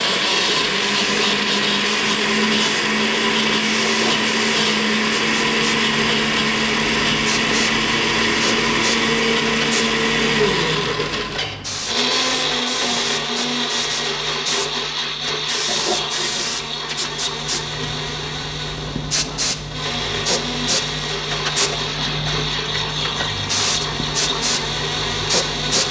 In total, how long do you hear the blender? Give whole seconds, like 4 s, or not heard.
26 s.